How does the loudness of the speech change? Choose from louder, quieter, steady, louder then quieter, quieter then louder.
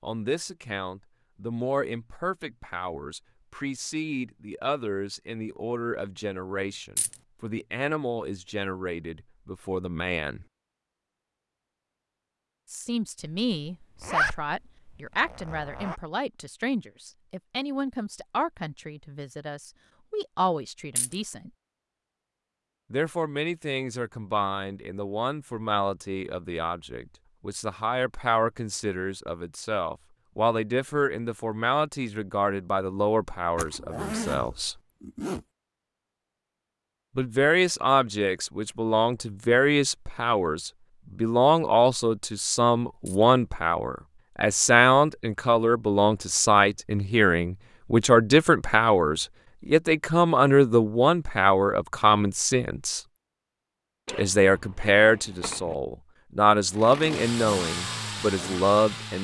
louder.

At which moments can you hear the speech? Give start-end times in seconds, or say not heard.
0.0-10.4, 12.7-21.5, 22.9-34.8, 37.1-53.0, 54.0-59.1.